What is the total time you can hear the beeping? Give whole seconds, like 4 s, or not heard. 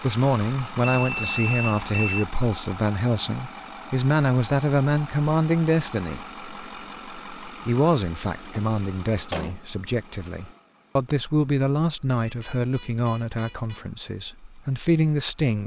3 s.